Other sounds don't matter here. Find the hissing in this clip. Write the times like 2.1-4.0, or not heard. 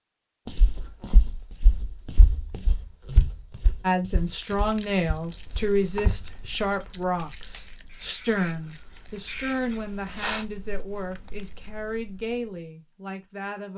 5.5-10.4.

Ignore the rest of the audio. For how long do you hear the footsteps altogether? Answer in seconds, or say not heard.
6 s.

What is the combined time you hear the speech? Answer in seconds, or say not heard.
10 s.